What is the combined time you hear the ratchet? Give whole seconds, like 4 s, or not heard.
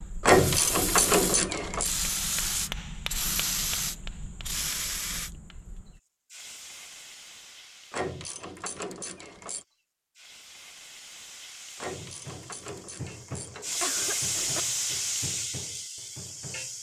6 s.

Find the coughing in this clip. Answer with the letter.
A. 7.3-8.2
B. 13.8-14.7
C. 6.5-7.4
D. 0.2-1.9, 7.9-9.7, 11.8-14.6
B.